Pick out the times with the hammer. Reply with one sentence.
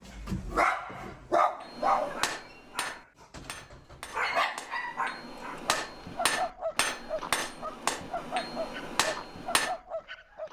The hammer can be heard from 1.6 to 9.8 s.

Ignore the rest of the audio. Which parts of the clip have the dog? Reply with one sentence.
You can hear the dog from 0.1 to 10.4 s.